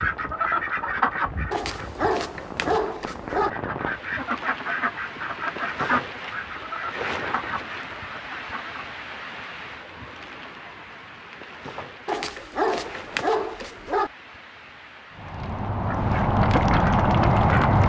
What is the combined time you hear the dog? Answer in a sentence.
The dog can be heard for 4 seconds in total.